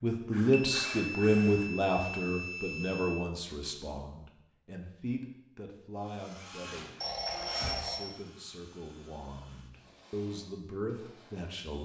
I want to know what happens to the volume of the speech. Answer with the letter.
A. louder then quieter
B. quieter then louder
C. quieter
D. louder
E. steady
B.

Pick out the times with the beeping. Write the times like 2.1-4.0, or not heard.
0.5-3.2, 7.0-8.2.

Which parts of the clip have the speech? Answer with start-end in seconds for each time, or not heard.
0.0-11.8.